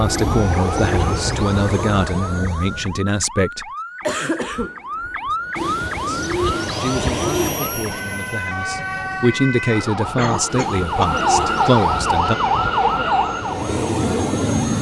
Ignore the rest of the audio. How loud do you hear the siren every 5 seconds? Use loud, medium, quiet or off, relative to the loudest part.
medium, medium, loud.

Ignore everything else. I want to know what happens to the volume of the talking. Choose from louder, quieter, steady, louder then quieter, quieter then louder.
quieter then louder.